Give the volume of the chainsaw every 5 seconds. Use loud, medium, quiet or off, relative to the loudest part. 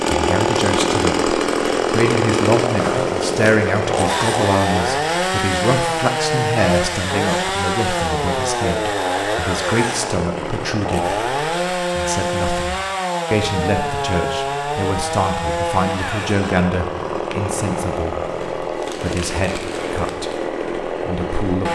loud, loud, loud, medium, medium.